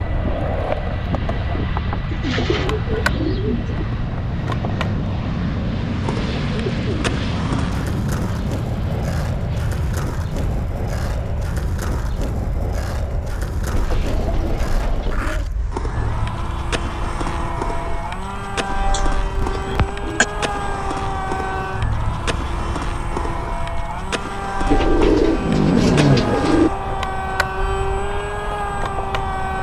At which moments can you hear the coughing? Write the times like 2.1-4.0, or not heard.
18.9-20.2.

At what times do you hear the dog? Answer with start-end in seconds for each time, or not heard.
not heard.